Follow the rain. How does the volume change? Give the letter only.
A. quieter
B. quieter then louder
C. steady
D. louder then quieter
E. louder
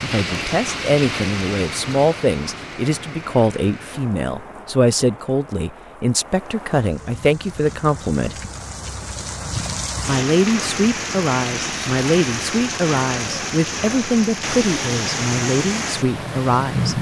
B.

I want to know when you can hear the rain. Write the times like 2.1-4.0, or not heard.
0.0-16.9.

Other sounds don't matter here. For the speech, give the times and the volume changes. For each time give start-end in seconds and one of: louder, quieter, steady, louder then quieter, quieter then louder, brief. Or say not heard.
0.0-8.3 steady
10.1-16.9 steady.